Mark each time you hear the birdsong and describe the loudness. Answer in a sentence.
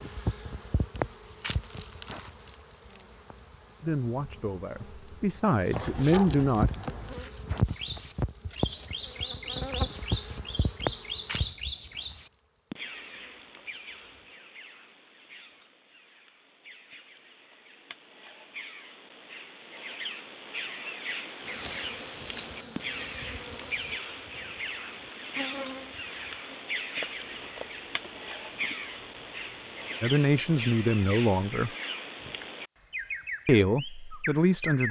The birdsong can be heard from 7.7 to 34.8 s, getting quieter then louder.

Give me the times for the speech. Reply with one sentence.
The speech can be heard from 3.8 to 6.7 s, from 30.0 to 31.7 s and from 33.5 to 34.8 s.